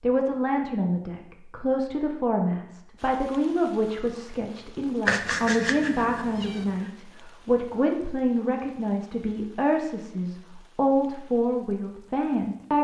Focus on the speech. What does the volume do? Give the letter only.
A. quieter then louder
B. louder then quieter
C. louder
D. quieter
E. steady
E.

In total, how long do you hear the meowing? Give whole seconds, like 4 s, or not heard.
2 s.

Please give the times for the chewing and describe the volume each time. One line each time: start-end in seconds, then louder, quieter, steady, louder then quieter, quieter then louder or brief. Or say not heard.
not heard.